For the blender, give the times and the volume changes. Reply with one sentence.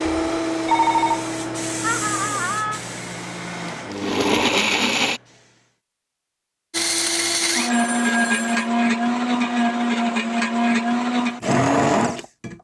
You can hear the blender from 0.0 to 5.2 s, getting quieter then louder; and from 6.7 to 12.5 s, at a steady volume.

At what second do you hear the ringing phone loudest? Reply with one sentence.
The loudest moment of the ringing phone is at 1 second.